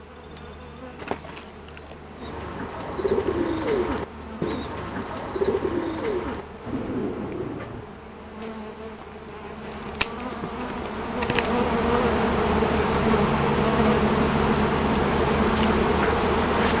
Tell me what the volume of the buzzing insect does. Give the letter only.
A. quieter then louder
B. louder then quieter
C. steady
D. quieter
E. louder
E.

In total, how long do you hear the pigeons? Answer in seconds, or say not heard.
6 s.